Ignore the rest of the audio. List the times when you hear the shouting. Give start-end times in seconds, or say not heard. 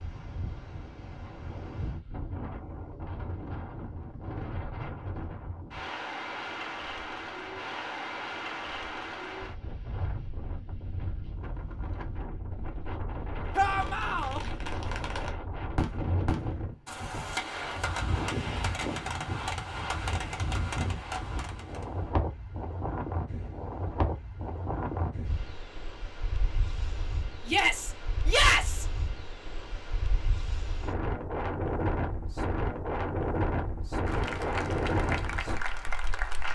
13.6-14.4, 27.4-28.9.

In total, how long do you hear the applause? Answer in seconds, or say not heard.
2 s.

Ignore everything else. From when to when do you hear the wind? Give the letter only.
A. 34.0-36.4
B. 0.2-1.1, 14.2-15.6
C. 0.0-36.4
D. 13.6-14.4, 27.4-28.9
C.